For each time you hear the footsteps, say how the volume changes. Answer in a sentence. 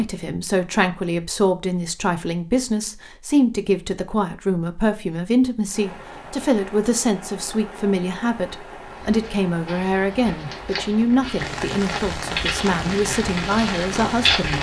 You can hear the footsteps from 8.8 to 14.5 s, getting louder.